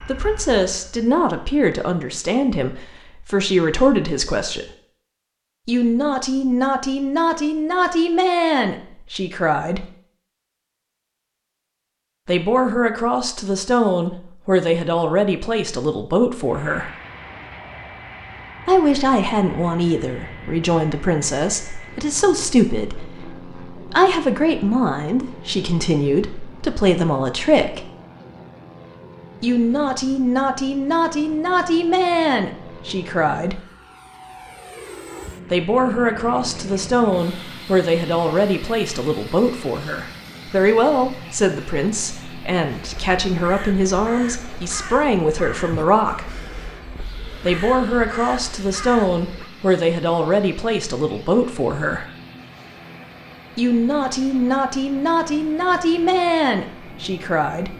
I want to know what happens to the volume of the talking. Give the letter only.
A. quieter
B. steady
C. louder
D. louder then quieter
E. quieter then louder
B.